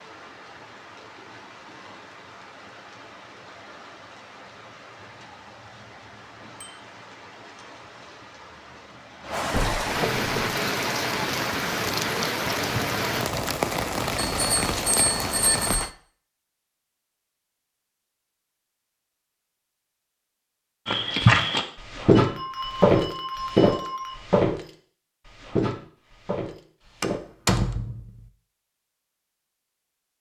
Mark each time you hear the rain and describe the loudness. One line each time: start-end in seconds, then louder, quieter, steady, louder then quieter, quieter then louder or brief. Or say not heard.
0.0-15.9 louder.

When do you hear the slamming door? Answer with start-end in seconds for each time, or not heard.
9.5-10.6, 27.0-28.1.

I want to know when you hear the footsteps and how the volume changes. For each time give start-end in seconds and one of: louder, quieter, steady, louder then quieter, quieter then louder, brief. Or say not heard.
20.9-27.2 quieter.